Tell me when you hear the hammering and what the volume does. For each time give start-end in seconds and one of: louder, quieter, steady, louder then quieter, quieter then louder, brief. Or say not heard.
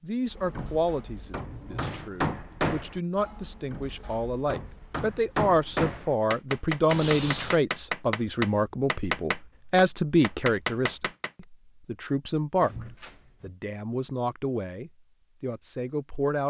0.2-11.3 quieter then louder.